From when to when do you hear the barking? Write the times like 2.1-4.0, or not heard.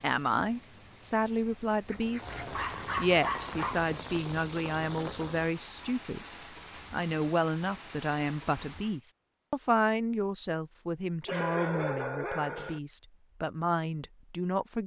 1.9-3.8, 11.2-12.8.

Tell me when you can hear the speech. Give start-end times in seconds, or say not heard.
0.0-2.4, 3.0-6.2, 6.9-14.8.